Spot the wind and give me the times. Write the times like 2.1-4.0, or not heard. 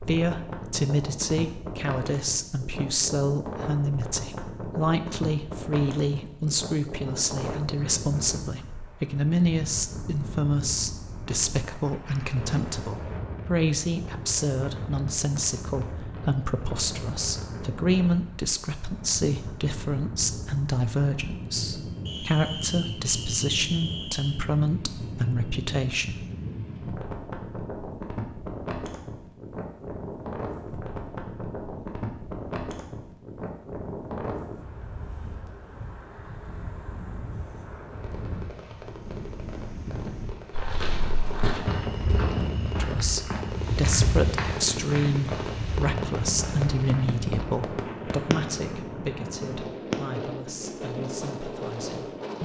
0.0-52.4.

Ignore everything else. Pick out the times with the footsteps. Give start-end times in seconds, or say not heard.
40.5-47.2.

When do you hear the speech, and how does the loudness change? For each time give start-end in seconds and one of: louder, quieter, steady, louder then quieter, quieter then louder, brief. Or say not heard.
0.1-26.2 steady
42.8-52.4 quieter.